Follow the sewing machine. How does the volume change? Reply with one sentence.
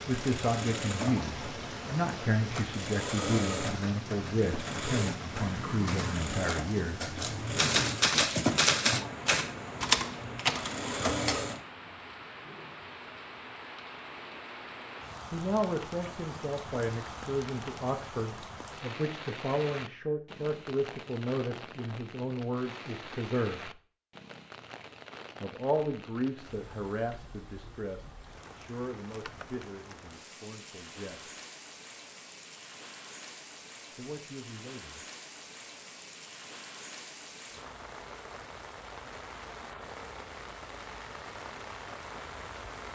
The loudness of the sewing machine stays about the same.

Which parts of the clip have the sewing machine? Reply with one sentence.
You can hear the sewing machine from 0.0 to 11.7 s.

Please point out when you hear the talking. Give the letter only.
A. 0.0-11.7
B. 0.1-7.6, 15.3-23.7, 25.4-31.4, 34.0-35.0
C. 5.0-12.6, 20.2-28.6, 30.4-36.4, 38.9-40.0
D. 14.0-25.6
B.